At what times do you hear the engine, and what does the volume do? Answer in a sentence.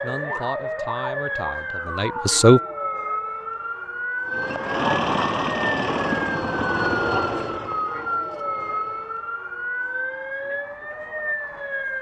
The engine can be heard from 4.2 to 9.2 s, getting quieter.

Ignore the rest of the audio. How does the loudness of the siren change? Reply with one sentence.
The loudness of the siren stays about the same.